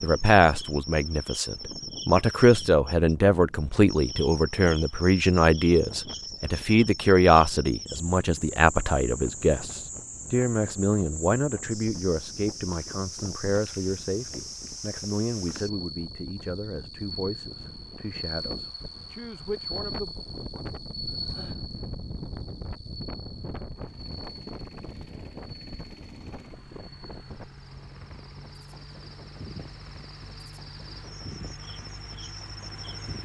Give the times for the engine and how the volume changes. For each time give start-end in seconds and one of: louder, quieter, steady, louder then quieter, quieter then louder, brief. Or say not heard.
23.7-33.2 louder.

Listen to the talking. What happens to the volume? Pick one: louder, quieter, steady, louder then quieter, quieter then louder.
quieter.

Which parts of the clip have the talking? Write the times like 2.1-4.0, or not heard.
0.0-20.1.